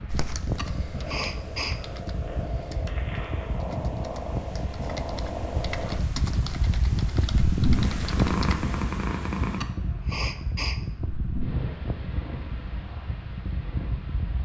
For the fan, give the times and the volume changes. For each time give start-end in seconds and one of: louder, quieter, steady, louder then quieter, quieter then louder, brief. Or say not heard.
0.0-14.3 louder then quieter.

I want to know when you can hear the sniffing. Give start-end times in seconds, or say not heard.
0.6-1.8, 9.6-10.8.